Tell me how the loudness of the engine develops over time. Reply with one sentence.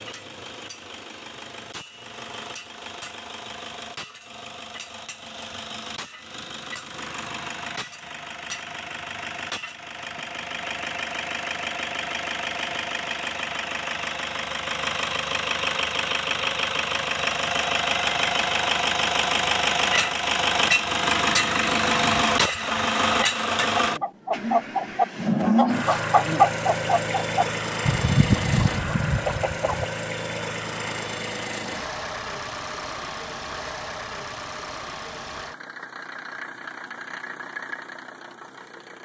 The loudness of the engine goes up, then down.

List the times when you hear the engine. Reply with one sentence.
You can hear the engine from 0.0 to 39.0 s.